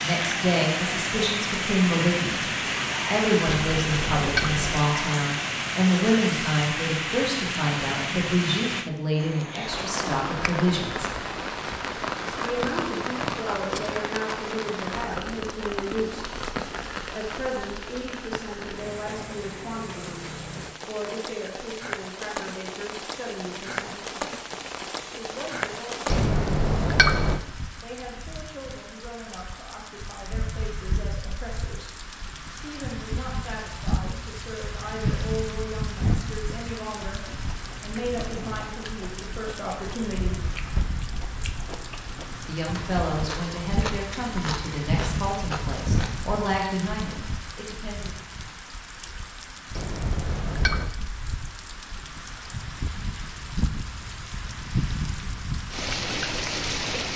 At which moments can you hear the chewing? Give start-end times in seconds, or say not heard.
37.1-46.2.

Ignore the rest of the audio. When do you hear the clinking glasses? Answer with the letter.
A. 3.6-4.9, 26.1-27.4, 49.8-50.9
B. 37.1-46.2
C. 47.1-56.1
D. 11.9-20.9
A.